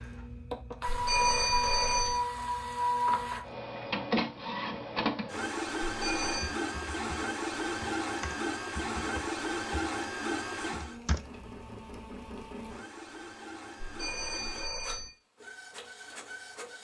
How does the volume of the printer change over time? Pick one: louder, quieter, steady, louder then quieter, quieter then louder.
quieter.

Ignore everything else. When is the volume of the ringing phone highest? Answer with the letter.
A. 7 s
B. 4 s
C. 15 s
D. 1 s
D.